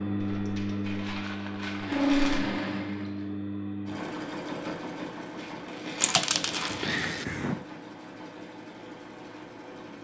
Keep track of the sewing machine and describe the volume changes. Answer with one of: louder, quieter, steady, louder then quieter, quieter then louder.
quieter.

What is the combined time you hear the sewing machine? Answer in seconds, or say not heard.
10 s.